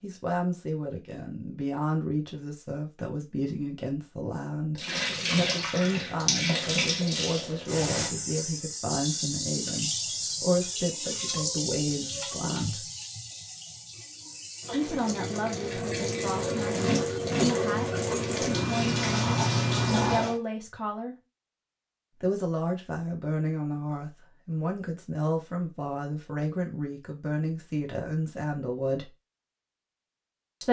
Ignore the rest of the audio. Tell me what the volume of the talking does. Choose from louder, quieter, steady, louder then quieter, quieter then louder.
steady.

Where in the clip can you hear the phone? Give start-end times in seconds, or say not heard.
not heard.